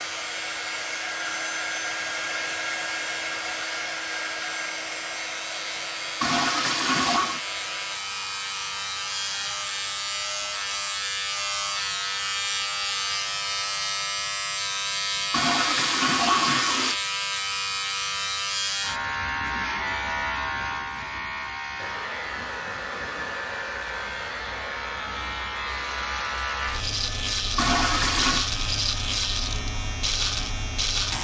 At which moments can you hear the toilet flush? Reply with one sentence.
The toilet flush can be heard from 6.2 to 7.4 s, from 15.3 to 16.9 s and from 27.6 to 28.5 s.